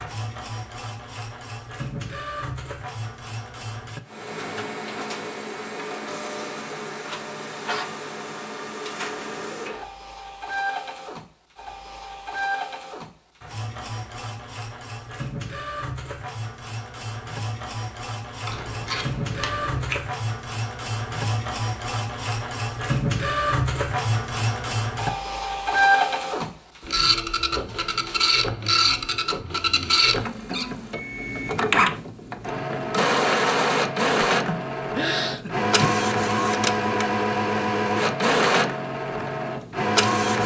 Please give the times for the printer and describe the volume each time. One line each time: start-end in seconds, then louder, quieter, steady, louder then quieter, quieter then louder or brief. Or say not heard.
0.0-40.4 louder.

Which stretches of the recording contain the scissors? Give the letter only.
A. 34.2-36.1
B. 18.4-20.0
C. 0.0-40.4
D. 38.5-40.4
B.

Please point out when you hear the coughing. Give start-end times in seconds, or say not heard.
34.2-36.1.